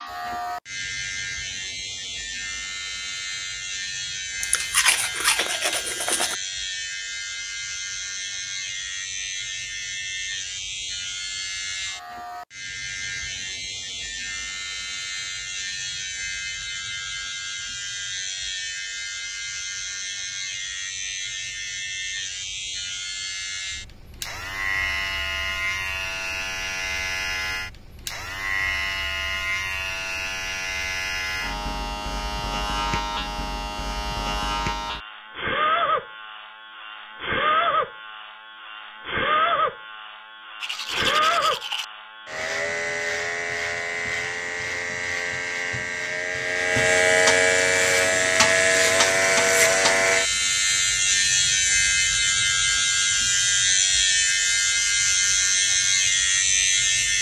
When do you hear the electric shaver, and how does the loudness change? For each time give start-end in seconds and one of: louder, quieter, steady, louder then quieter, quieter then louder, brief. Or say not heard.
0.0-57.1 louder.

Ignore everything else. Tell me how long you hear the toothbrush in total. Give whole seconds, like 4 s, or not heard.
3 s.